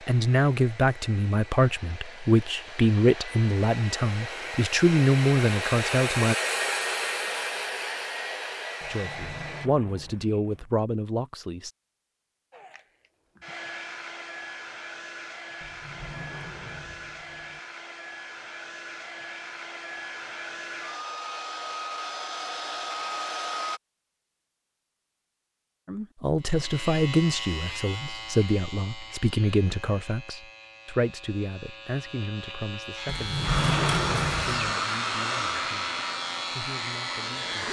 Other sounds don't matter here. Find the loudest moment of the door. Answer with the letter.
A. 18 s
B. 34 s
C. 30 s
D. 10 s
B.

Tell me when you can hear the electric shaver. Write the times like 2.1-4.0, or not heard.
26.4-37.6.